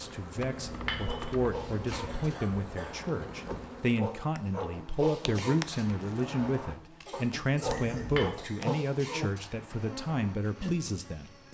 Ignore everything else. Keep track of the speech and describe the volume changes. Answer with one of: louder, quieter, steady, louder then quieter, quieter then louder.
steady.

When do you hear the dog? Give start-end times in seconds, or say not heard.
0.9-10.4.